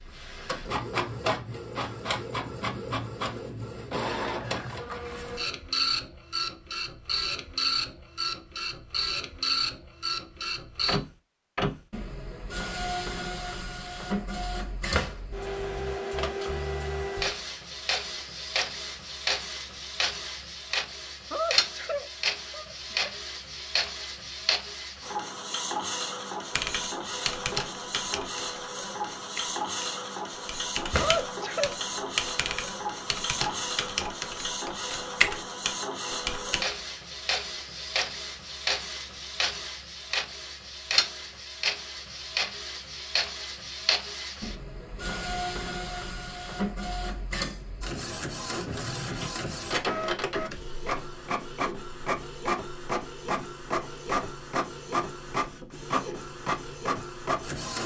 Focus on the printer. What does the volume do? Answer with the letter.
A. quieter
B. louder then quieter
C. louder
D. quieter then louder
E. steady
E.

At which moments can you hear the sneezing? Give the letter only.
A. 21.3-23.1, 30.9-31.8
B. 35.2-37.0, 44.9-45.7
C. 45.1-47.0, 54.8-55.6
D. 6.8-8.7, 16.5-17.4
A.